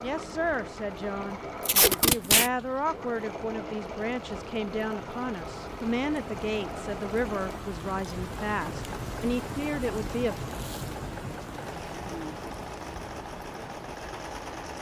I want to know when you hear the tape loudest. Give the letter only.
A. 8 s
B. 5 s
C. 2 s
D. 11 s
C.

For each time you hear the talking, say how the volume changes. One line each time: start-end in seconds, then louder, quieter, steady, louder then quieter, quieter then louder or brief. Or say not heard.
0.0-10.3 steady.